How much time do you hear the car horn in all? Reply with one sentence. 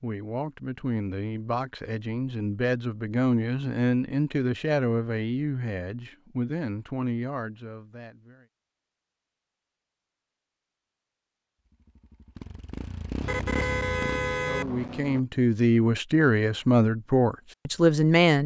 The car horn can be heard for 2 seconds in total.